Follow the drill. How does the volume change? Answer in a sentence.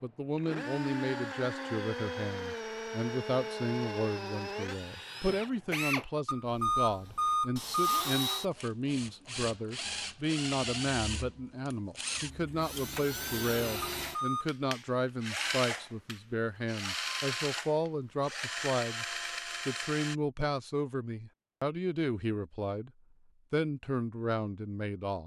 The loudness of the drill stays about the same.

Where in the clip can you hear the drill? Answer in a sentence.
You can hear the drill from 0.3 to 20.1 s.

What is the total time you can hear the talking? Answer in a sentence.
You can hear the talking for 24 seconds altogether.